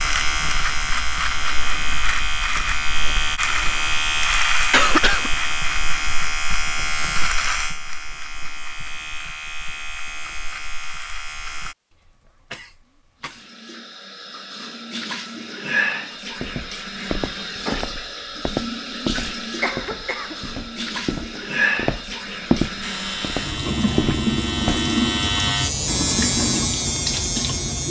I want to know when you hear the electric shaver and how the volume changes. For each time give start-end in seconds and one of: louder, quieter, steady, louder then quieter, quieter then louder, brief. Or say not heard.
0.0-11.8 quieter
22.8-27.8 louder.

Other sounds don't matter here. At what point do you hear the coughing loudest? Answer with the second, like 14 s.
5 s.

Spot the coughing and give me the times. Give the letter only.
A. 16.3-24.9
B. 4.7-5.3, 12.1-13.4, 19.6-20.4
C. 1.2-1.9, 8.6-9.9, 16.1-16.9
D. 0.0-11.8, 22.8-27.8
B.